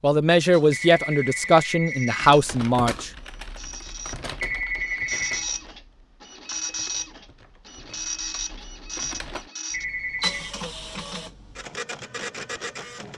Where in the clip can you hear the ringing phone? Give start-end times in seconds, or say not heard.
0.7-2.2, 4.4-5.5, 9.7-10.4.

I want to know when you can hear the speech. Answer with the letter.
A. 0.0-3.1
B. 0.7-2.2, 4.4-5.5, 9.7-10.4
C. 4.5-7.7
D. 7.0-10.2
A.